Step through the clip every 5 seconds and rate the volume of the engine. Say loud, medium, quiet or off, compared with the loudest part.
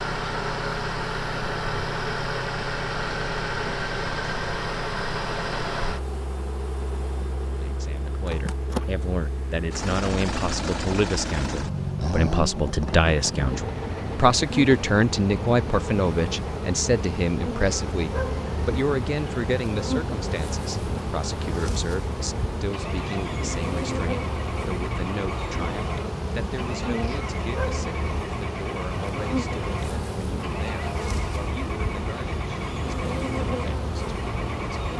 loud, medium, loud, medium, medium, medium, medium.